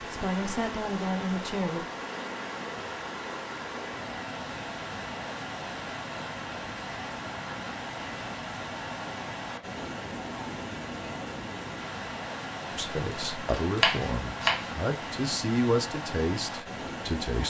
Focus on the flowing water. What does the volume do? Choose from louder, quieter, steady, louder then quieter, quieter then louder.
steady.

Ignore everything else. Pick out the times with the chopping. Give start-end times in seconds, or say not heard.
13.1-14.7.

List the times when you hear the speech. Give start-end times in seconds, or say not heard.
0.0-1.9, 12.7-17.4.